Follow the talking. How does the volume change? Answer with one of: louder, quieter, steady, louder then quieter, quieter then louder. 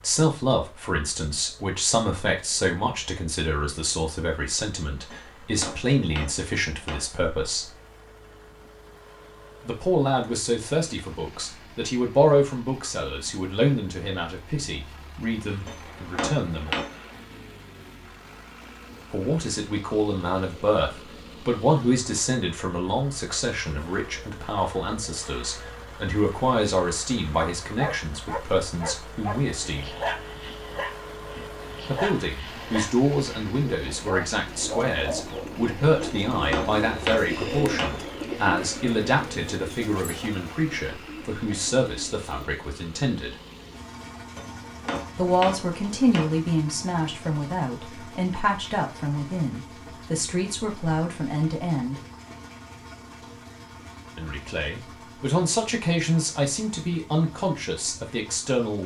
steady.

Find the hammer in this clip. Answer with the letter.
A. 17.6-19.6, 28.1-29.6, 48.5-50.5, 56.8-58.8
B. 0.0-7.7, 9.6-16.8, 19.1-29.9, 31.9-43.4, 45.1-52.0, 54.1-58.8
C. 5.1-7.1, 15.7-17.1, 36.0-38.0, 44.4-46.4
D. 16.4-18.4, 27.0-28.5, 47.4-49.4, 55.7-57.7
C.